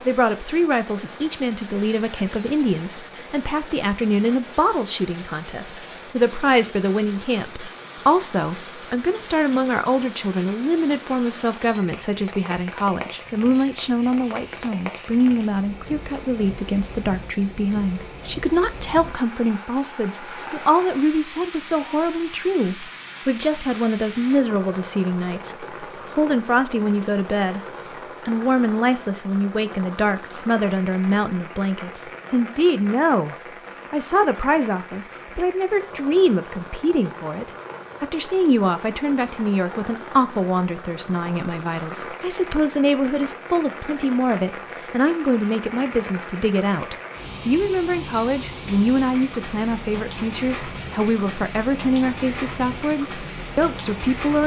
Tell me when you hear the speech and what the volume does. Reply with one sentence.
The speech can be heard from 0.1 to 27.6 s, at a steady volume; and from 28.2 to 54.4 s, at a steady volume.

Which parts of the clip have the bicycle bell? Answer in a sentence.
You can't hear the bicycle bell here.